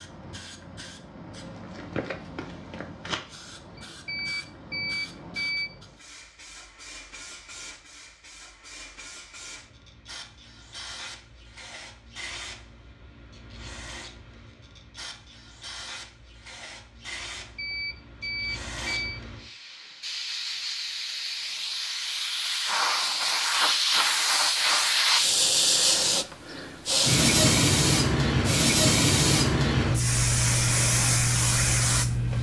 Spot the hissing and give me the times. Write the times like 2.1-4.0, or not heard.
0.0-32.3.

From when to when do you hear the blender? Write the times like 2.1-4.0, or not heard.
not heard.